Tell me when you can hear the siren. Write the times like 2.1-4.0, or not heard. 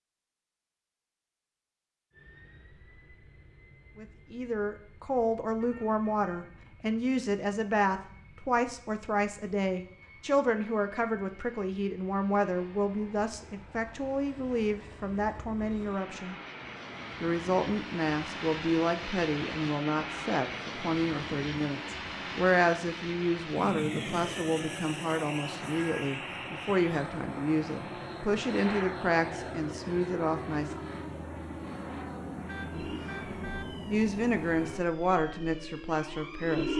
32.7-36.7.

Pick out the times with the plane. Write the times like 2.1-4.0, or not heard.
2.1-34.9.